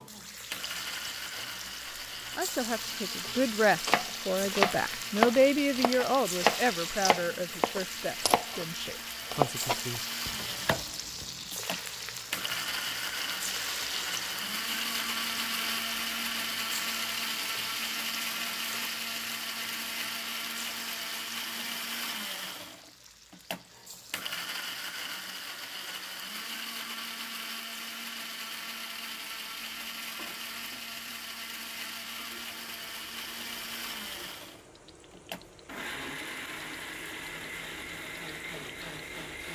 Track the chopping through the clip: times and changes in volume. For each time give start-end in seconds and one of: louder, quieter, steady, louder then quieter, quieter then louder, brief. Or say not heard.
3.9-11.5 quieter.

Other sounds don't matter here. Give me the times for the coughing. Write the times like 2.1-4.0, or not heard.
not heard.